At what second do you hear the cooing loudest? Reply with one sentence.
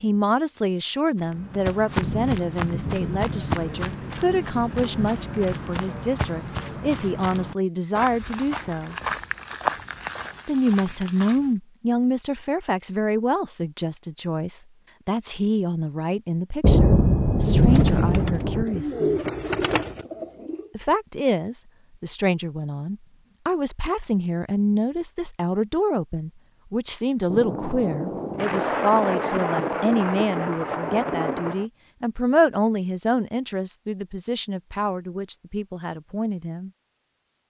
The volume of the cooing peaks at 19 seconds.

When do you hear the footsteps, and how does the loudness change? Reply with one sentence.
The footsteps can be heard from 1.1 to 11.5 s, at a steady volume.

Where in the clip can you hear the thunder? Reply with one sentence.
You can hear the thunder from 2.0 to 5.8 s, from 16.6 to 18.6 s and from 27.3 to 31.6 s.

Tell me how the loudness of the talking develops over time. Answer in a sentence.
The volume of the talking stays about the same.